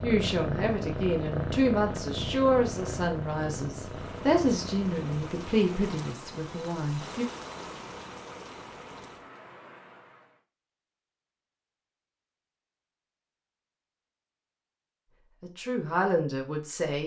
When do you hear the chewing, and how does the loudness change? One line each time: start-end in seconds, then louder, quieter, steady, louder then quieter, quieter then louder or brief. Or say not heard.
not heard.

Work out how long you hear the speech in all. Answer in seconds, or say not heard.
9 s.